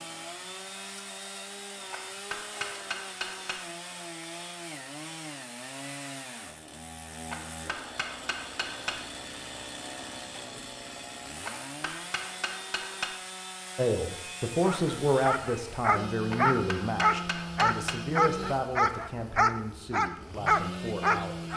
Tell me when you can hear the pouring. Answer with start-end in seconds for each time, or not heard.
not heard.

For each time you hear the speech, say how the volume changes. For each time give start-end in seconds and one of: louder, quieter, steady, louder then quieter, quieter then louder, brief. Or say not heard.
13.8-21.5 quieter.